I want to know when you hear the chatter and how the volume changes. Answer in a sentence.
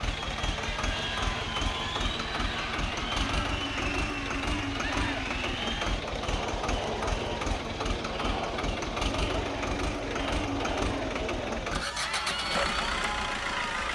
The chatter can be heard from 0.0 to 13.9 s, at a steady volume.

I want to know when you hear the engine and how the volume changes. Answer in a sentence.
You can hear the engine from 0.0 to 13.9 s, at a steady volume.